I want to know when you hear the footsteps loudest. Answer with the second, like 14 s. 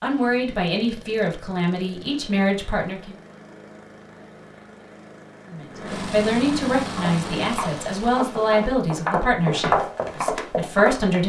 10 s.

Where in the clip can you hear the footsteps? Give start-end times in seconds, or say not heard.
6.8-11.2.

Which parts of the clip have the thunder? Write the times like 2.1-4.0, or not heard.
not heard.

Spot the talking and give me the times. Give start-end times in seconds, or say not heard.
0.0-3.1, 5.5-11.2.